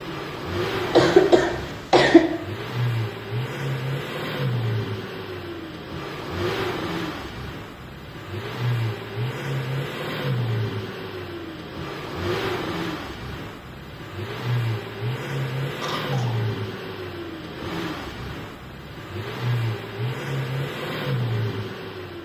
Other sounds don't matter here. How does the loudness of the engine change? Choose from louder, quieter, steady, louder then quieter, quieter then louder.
steady.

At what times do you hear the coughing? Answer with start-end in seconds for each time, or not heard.
0.8-2.2, 15.8-16.4.